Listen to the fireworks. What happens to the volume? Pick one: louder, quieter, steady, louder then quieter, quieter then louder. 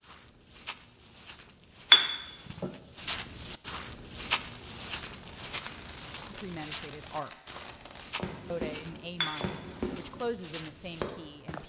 louder.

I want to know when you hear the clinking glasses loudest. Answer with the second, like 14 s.
2 s.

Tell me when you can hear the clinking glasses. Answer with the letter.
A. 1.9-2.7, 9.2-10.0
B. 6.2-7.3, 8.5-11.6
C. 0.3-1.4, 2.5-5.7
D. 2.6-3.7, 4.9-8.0
A.